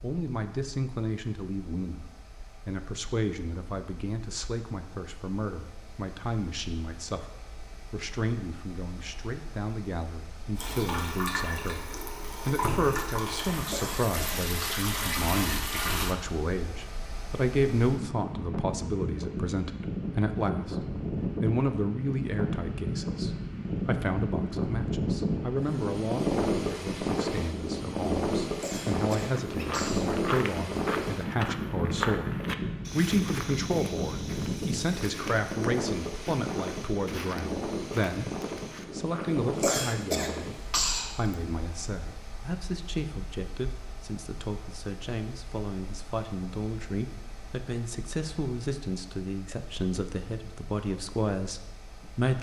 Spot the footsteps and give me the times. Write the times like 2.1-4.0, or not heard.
29.3-39.9.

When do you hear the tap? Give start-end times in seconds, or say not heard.
10.6-16.1.